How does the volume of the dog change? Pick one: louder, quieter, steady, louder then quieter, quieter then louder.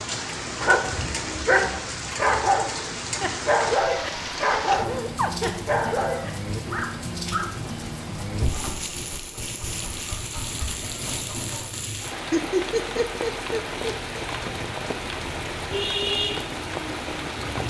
quieter.